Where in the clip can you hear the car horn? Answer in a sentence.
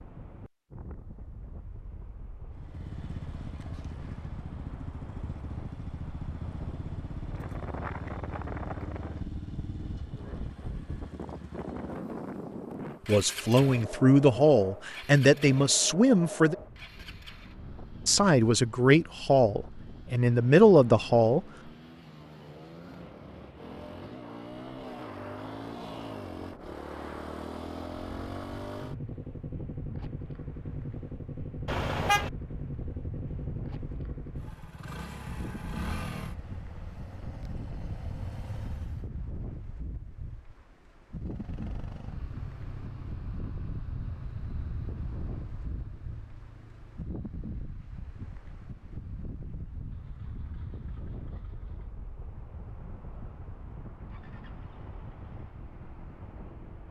The car horn can be heard from 31.6 to 32.3 s.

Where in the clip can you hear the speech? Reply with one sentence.
The speech can be heard from 13.1 to 16.6 s and from 18.1 to 21.4 s.